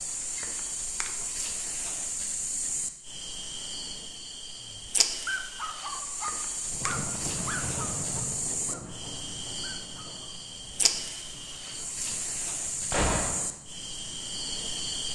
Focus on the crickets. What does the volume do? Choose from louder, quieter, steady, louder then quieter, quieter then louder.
steady.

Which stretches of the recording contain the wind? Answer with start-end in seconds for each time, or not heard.
6.7-15.1.